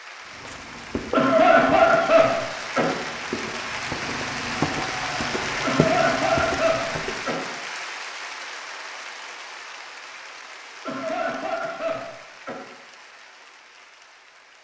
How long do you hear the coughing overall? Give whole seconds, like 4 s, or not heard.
5 s.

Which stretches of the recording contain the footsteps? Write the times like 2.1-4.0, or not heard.
0.4-7.2.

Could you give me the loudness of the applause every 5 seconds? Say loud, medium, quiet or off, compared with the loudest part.
loud, loud, quiet.